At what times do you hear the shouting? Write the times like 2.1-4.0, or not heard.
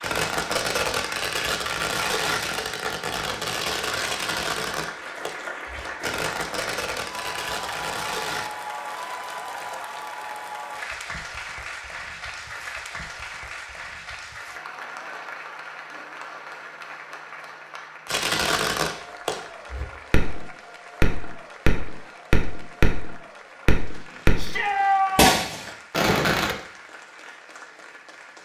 24.4-25.4.